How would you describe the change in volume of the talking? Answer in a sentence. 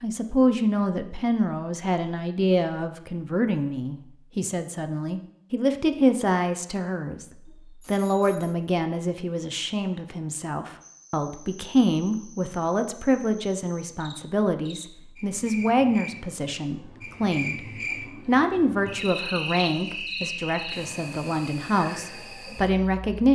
The loudness of the talking stays about the same.